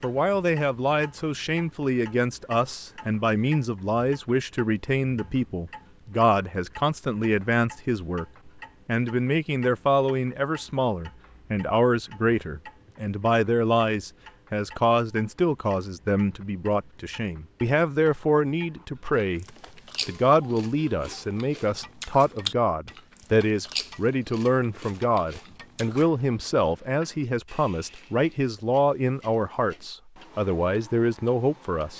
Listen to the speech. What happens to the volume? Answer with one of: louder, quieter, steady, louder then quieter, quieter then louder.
steady.